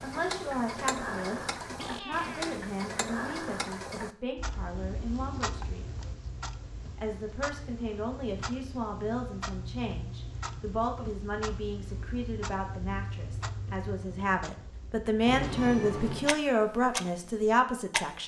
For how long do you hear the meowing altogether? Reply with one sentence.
You can hear the meowing for 2 seconds altogether.